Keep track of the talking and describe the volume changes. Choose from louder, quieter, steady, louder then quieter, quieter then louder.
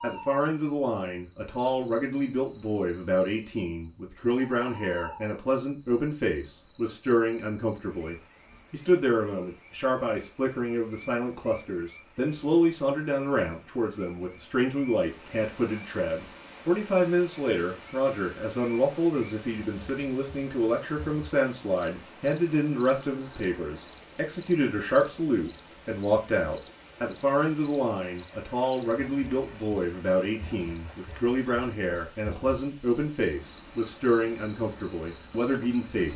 steady.